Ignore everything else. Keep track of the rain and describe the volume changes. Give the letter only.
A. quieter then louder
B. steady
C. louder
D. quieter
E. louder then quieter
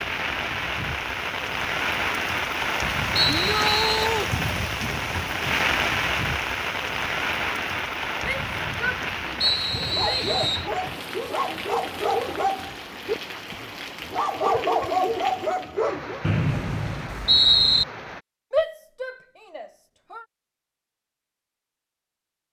D.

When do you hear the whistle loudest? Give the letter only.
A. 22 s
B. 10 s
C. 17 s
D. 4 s
C.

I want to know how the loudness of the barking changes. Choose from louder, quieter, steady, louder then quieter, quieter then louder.
louder.